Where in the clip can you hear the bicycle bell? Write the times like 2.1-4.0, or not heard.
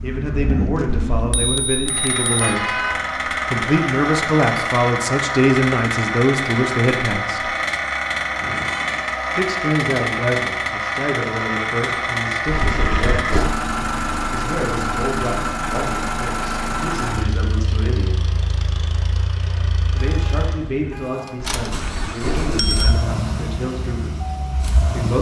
0.8-2.5, 12.4-13.6, 21.4-23.1.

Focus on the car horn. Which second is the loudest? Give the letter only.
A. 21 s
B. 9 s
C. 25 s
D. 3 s
D.